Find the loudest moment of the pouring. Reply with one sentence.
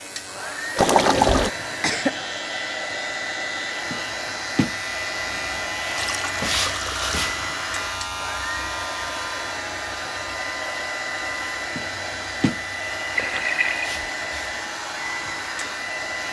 The volume of the pouring peaks at 1 second.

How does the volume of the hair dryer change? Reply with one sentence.
The loudness of the hair dryer stays about the same.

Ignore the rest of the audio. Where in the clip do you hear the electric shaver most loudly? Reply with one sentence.
The volume of the electric shaver peaks at 7 seconds.